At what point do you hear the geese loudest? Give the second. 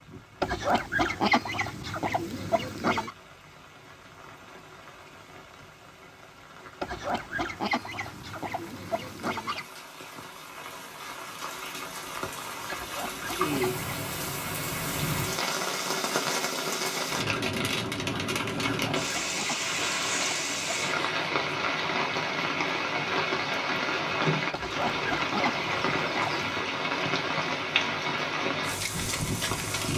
1 s.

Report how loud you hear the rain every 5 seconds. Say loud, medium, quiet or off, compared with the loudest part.
quiet, quiet, medium, loud, loud, loud.